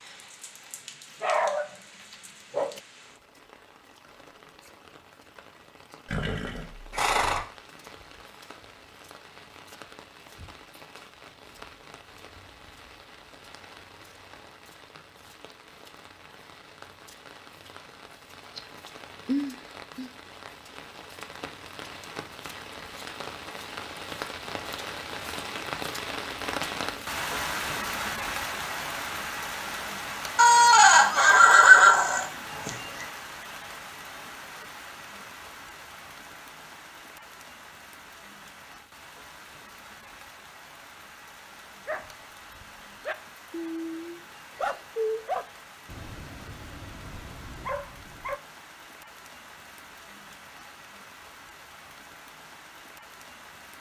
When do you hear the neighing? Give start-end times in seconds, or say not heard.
6.1-7.4, 30.4-33.0.